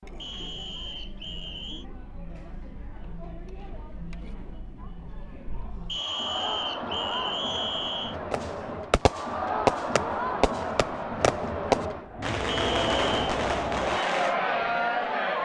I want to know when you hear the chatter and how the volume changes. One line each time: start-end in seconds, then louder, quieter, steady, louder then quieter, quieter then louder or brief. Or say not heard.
0.0-15.4 louder.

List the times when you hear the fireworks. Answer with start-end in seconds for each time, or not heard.
8.3-14.3.